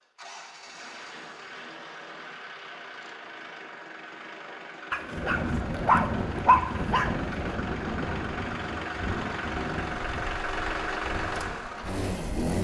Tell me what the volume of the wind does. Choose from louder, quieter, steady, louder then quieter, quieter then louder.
quieter.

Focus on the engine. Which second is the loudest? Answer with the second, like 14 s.
11 s.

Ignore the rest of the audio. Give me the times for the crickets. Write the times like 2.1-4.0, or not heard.
not heard.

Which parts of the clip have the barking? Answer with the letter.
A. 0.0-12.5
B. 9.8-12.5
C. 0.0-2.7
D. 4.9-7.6
D.